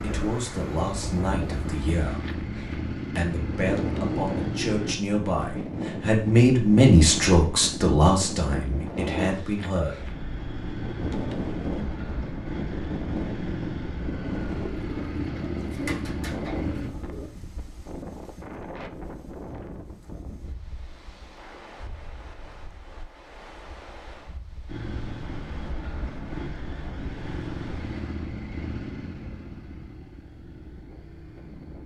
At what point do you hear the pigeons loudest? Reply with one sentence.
The volume of the pigeons peaks at 16 seconds.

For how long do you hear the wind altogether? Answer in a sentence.
You can hear the wind for 32 seconds altogether.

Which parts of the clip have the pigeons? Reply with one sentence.
You can hear the pigeons from 14.5 to 17.3 s.